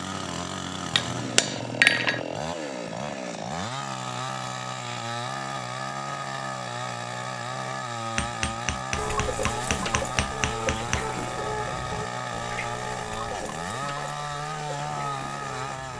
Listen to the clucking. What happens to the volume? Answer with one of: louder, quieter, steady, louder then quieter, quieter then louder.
quieter.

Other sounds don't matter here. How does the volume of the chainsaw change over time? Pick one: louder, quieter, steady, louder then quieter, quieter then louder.
steady.